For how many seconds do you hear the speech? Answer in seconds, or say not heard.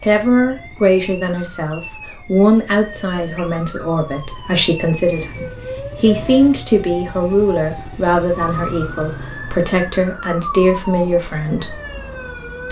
12 s.